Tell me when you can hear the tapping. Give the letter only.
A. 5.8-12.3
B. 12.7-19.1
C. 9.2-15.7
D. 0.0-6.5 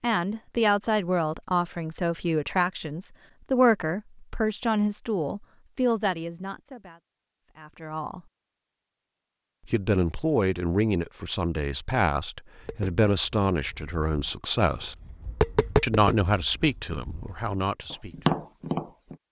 B.